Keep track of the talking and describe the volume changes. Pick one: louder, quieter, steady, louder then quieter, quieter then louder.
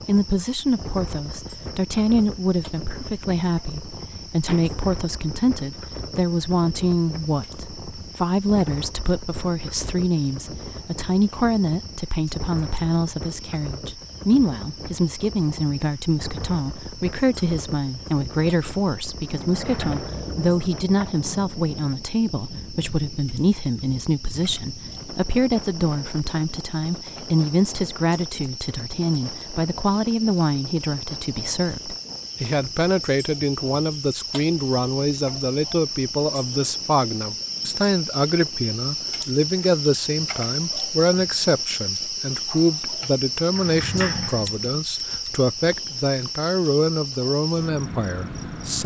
steady.